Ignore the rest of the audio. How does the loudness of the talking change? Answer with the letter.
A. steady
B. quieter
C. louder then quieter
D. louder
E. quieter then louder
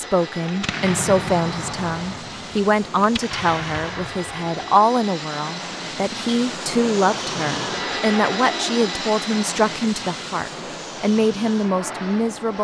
A.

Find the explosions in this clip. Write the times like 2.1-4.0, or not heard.
0.5-4.5.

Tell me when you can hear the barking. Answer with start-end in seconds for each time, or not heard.
not heard.